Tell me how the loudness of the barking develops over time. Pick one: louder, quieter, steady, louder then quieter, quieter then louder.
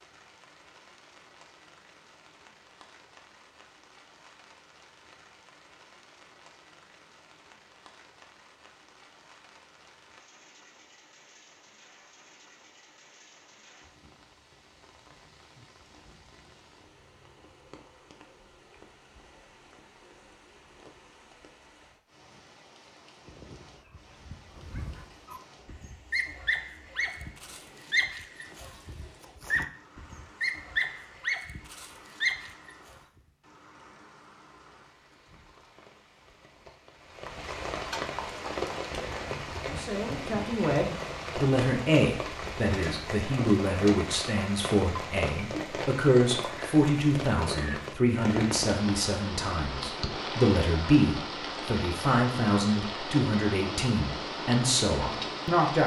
louder.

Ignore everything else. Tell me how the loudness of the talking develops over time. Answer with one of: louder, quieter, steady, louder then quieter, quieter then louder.
steady.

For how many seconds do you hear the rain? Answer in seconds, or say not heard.
56 s.